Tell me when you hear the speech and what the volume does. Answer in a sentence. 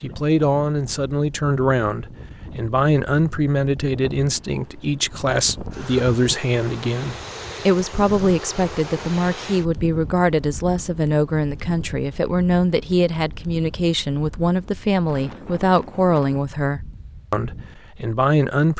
You can hear the speech from 0.0 to 18.7 s, at a steady volume.